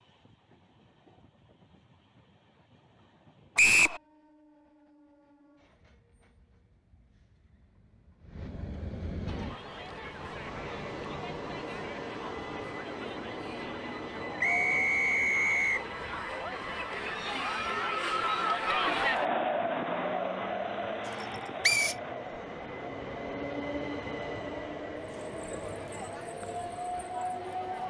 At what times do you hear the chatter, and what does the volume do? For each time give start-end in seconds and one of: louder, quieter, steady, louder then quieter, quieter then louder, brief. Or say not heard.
9.2-27.8 louder then quieter.